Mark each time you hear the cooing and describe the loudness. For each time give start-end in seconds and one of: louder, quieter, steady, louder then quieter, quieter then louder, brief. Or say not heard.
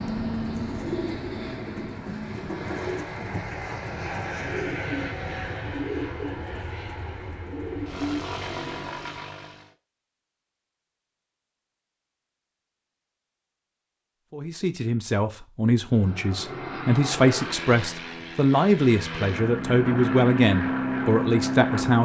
0.5-9.1 steady.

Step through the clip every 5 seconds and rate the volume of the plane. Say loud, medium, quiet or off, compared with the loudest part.
medium, medium, off, medium, loud.